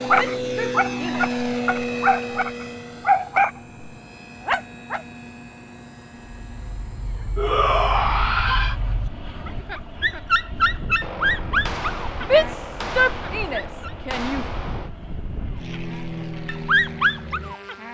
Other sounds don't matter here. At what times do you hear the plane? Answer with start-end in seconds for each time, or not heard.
0.0-17.8.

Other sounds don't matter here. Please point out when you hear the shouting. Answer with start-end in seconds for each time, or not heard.
0.1-1.3, 7.3-8.8, 12.2-14.4.